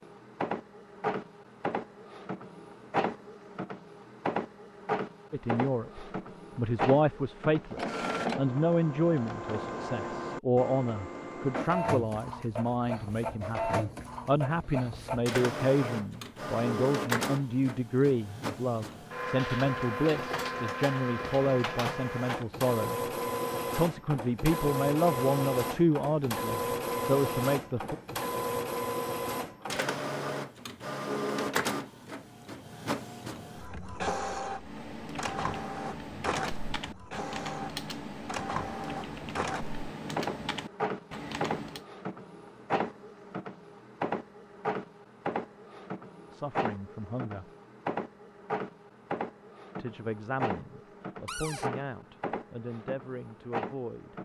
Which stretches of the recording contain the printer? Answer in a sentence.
You can hear the printer from 0.0 to 54.2 s.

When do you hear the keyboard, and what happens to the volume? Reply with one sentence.
The keyboard can be heard from 34.5 to 41.9 s, at a steady volume.